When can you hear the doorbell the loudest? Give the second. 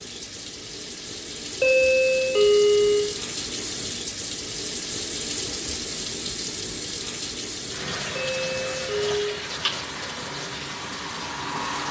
3 s.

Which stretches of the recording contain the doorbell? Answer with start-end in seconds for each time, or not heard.
1.6-3.1, 8.2-9.3.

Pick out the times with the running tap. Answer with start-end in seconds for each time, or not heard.
0.0-11.8.